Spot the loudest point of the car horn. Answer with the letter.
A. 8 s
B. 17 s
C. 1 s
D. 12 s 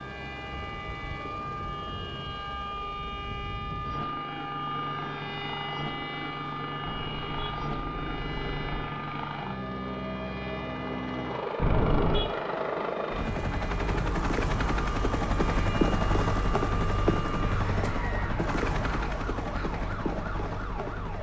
D.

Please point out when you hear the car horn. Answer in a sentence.
You can hear the car horn from 6.8 to 8.8 s and from 11.6 to 12.3 s.